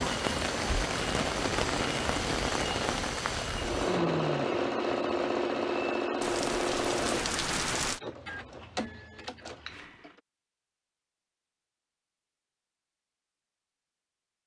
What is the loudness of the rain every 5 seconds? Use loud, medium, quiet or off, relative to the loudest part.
loud, loud, off.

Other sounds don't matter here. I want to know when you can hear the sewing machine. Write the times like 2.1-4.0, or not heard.
3.5-10.2.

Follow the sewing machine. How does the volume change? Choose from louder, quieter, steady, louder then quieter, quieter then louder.
quieter.